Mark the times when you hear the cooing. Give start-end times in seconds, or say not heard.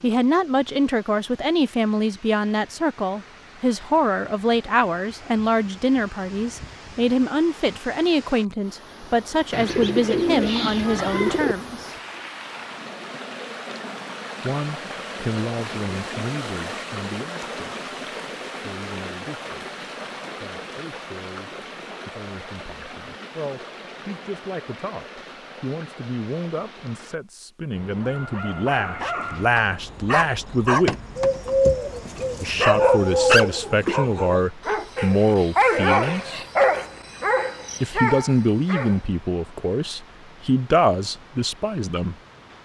9.5-11.6, 31.1-33.6.